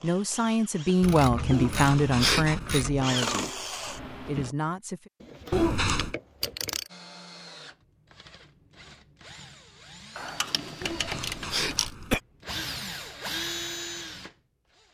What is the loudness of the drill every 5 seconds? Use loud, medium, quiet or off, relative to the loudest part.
loud, quiet, loud.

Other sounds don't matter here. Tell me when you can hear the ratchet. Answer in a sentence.
The ratchet can be heard from 1.0 to 3.1 s, from 5.2 to 6.9 s and from 10.2 to 11.9 s.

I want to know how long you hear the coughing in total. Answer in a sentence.
The coughing can be heard for 3 seconds in total.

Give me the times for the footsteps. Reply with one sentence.
You can't hear the footsteps here.